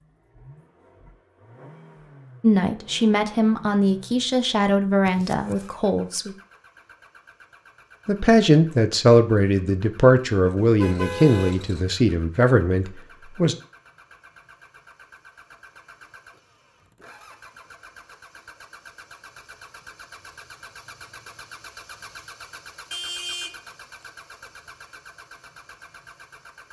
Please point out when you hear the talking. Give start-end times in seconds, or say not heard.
2.4-6.3, 8.1-13.6.